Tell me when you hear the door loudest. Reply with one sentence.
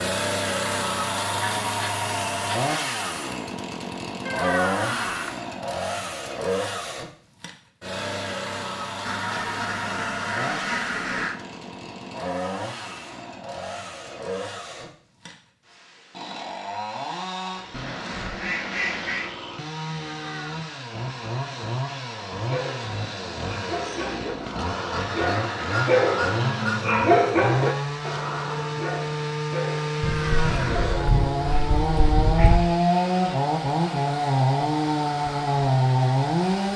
The loudest moment of the door is at 5 seconds.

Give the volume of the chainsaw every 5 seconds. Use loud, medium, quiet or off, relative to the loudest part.
medium, medium, quiet, quiet, medium, medium, loud, loud.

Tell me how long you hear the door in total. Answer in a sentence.
You can hear the door for 3 seconds altogether.